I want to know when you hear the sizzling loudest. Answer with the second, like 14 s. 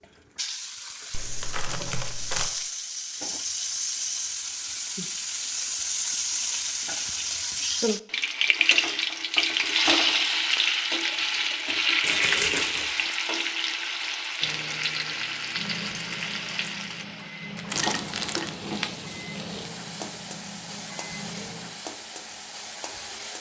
10 s.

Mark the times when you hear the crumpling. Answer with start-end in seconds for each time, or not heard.
1.1-2.5, 12.0-13.0, 17.6-18.5.